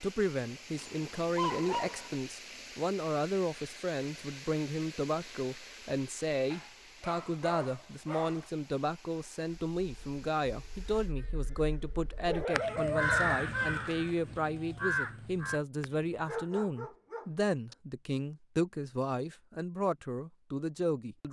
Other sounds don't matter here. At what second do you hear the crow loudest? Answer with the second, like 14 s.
13 s.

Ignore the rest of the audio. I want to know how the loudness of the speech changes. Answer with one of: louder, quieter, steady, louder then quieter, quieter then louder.
steady.